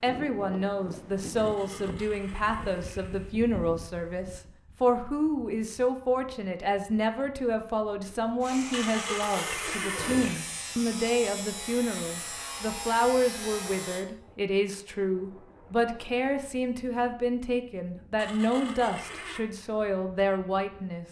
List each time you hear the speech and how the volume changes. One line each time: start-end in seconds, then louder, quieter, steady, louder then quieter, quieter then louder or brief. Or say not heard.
0.0-21.0 steady.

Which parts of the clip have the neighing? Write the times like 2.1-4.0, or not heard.
1.4-3.3, 8.7-10.4, 18.1-19.4.